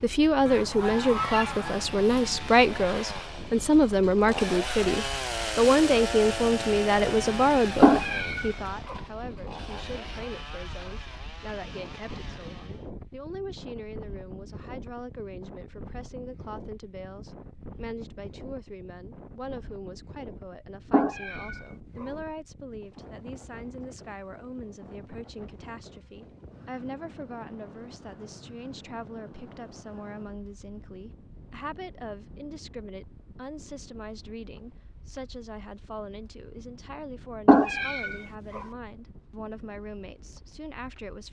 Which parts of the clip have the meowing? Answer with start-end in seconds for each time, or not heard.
7.8-8.9, 20.9-22.1, 37.5-38.6.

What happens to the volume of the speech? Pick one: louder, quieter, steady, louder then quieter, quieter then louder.
quieter.